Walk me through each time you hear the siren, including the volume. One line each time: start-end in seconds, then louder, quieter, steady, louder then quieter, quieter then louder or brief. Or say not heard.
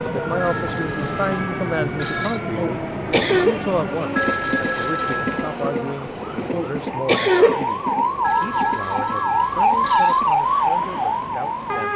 0.0-11.9 louder.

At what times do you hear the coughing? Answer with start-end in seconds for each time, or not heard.
2.5-3.6, 6.5-8.0.